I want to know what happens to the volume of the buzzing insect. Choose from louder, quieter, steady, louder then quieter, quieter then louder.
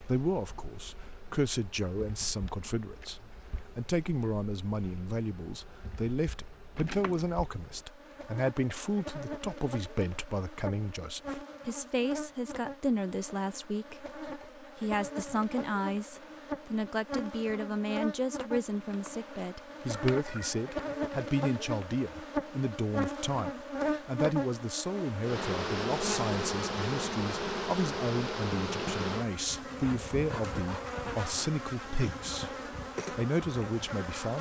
louder.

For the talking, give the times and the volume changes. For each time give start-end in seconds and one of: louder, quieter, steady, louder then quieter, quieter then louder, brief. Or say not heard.
0.0-34.3 steady.